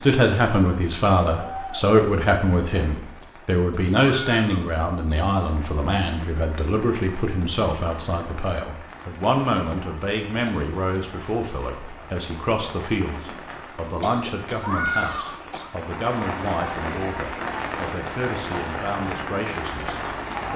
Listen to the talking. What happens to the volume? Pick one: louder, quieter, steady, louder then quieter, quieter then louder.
quieter.